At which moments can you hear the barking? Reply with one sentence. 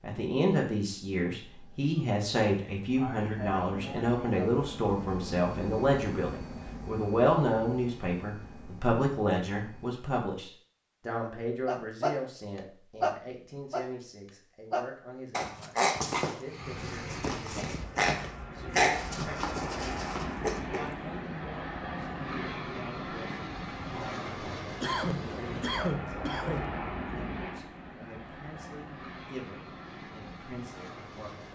The barking can be heard from 11.7 to 12.2 s, from 13.0 to 13.8 s and from 14.7 to 20.9 s.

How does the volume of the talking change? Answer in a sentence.
The volume of the talking goes down.